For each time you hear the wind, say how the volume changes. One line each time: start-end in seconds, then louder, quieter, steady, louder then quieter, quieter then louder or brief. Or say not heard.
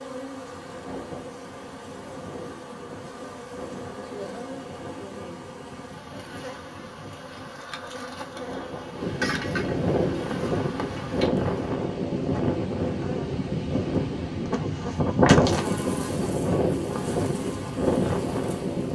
0.0-18.9 louder.